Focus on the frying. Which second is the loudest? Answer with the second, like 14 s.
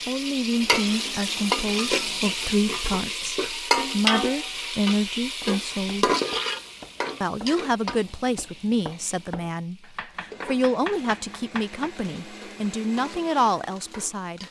4 s.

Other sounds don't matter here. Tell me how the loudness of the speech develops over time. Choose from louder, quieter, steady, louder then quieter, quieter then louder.
steady.